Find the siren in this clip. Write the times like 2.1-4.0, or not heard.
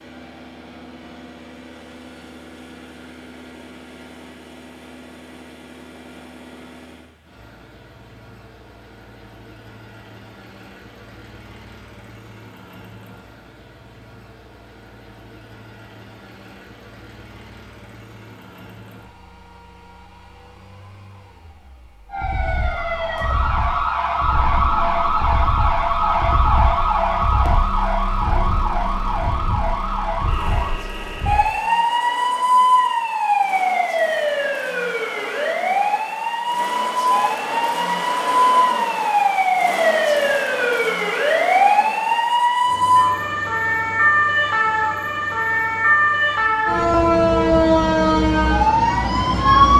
22.1-49.7.